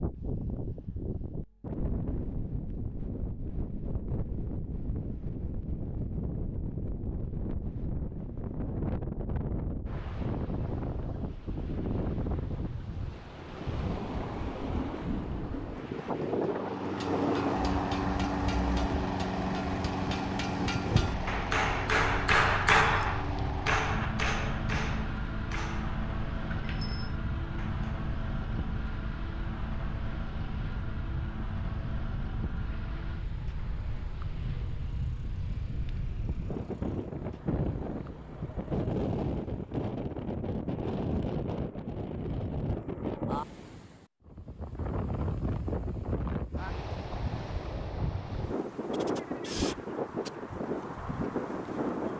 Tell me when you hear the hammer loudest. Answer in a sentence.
The volume of the hammer peaks at 23 seconds.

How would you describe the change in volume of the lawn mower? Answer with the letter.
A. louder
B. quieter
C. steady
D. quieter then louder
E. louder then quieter
B.